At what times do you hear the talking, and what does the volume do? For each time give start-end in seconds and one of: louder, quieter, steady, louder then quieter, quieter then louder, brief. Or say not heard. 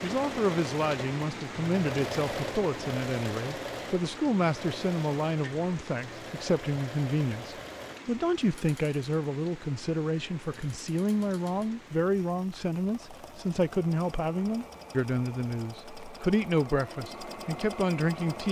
0.0-18.4 steady.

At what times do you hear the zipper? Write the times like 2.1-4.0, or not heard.
not heard.